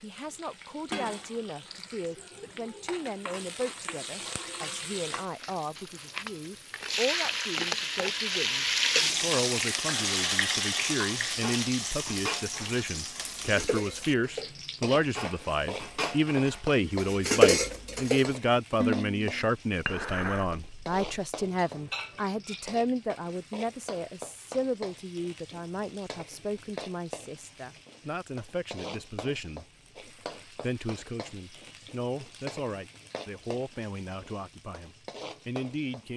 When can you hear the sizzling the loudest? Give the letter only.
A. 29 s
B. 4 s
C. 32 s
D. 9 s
D.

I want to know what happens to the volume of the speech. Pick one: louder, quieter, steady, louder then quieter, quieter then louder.
louder then quieter.